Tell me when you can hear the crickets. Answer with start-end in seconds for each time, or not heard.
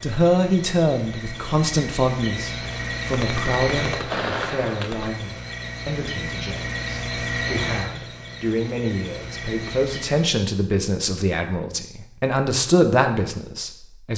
0.0-10.3.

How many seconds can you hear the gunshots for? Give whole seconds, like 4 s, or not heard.
2 s.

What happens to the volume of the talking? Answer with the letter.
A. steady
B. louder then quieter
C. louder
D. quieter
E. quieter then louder
E.